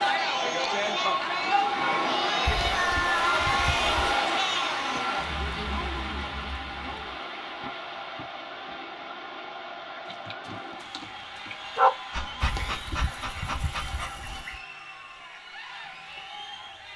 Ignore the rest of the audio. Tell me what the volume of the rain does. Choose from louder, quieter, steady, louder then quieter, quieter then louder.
quieter.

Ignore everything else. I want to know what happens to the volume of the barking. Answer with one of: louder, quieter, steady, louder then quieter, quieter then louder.
louder then quieter.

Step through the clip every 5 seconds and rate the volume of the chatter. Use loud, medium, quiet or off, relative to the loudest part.
loud, quiet, quiet, quiet.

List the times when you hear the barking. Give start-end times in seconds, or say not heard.
10.1-14.4.